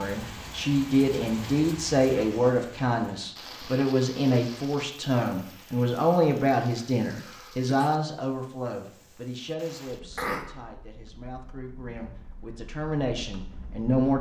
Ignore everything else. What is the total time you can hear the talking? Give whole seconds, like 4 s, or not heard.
14 s.